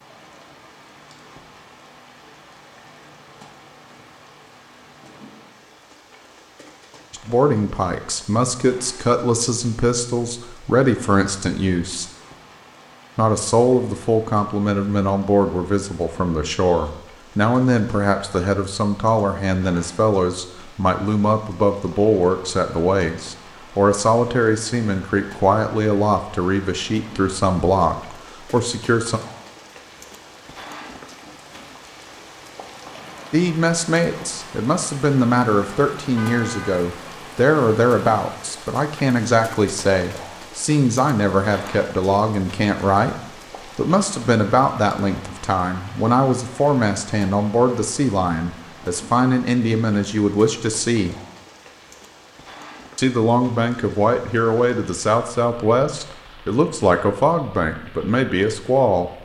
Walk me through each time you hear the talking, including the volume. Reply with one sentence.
The talking can be heard from 7.1 to 12.1 s, at a steady volume; from 13.2 to 29.2 s, at a steady volume; from 33.3 to 51.1 s, at a steady volume; and from 53.0 to 59.1 s, at a steady volume.